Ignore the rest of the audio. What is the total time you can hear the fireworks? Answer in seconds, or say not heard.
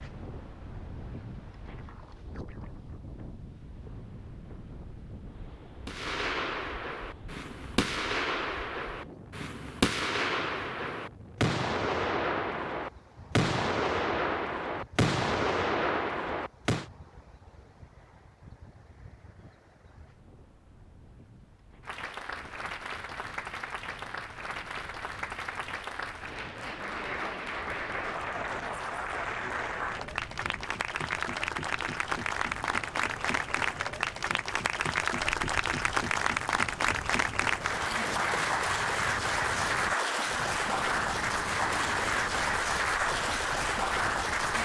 11 s.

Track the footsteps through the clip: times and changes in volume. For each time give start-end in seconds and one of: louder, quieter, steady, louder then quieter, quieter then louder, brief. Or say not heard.
not heard.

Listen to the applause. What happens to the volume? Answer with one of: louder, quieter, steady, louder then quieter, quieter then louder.
louder.